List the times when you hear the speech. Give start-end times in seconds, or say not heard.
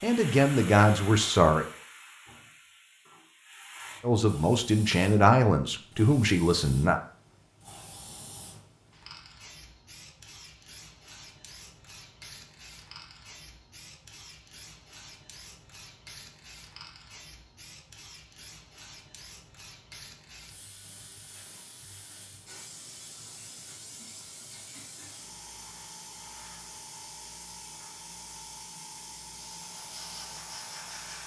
0.0-1.6, 4.0-7.0.